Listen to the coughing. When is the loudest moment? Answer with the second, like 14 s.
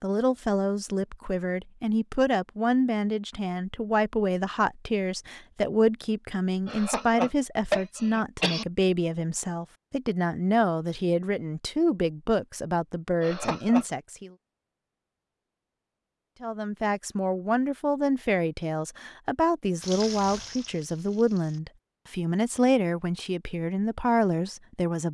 8 s.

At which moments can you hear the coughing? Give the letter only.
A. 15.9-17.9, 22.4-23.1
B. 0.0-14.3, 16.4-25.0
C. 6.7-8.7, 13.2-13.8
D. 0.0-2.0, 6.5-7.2
C.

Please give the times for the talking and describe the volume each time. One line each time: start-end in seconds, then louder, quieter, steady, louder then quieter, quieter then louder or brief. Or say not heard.
0.0-14.3 steady
16.4-25.0 steady.